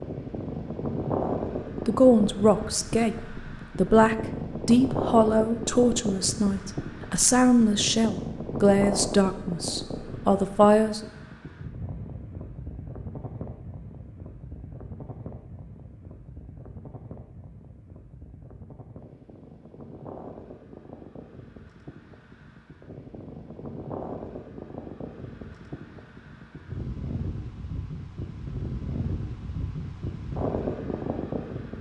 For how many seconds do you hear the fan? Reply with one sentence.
You can hear the fan for 32 seconds altogether.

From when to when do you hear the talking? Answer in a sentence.
The talking can be heard from 1.9 to 11.1 s.